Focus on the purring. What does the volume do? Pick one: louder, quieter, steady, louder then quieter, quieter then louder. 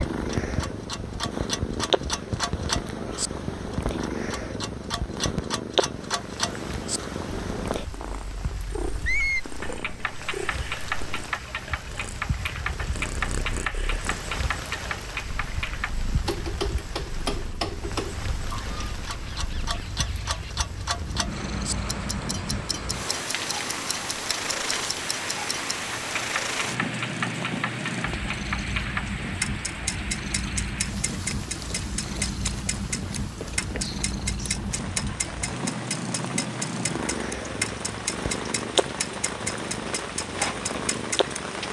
quieter then louder.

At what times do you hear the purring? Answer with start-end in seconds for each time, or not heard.
0.0-41.6.